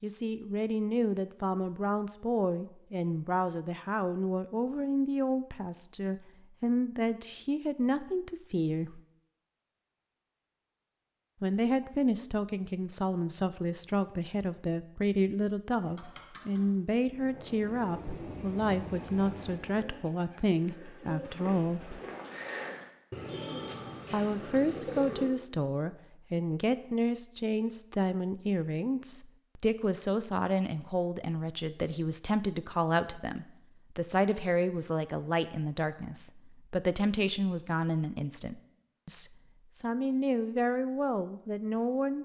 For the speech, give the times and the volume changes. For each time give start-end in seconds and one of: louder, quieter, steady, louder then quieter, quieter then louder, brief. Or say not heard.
0.0-9.0 steady
11.4-22.0 steady
24.1-42.2 steady.